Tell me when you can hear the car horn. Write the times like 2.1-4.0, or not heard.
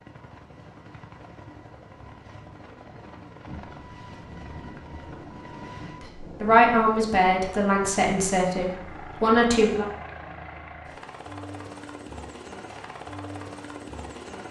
not heard.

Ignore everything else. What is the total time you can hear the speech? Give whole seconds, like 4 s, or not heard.
4 s.